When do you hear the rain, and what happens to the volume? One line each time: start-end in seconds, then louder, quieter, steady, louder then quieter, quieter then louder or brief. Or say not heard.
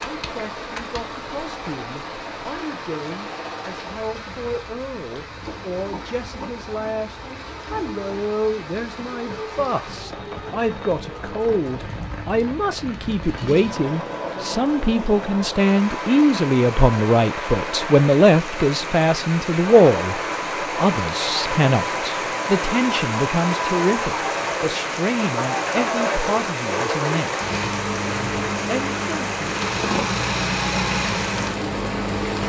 0.0-32.4 louder.